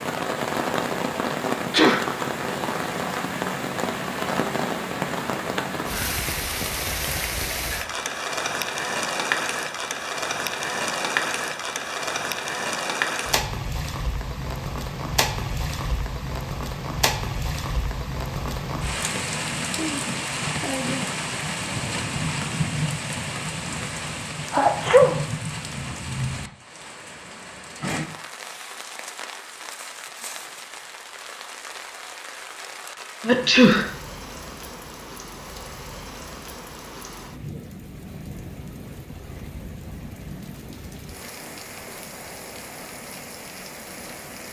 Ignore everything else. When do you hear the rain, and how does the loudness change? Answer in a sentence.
You can hear the rain from 0.0 to 44.4 s, getting quieter.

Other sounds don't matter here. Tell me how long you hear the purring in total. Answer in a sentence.
The purring can't be heard in this clip.